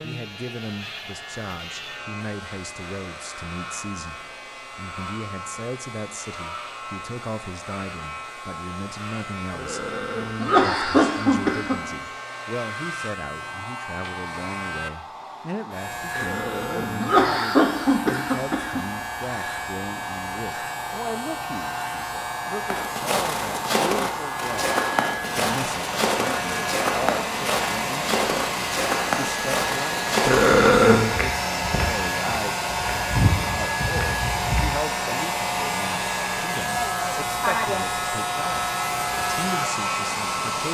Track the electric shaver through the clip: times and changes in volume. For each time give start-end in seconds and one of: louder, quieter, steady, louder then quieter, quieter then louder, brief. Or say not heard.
0.0-40.7 louder.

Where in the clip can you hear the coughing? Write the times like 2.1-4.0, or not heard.
9.6-11.8, 16.1-18.8, 30.2-31.1.